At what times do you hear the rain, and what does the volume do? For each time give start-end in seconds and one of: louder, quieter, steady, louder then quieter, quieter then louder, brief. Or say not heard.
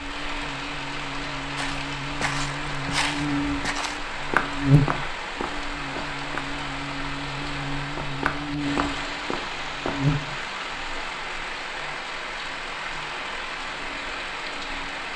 0.0-15.1 steady.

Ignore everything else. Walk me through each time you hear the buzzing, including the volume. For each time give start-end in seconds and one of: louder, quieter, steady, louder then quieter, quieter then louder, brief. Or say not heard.
0.0-15.1 louder then quieter.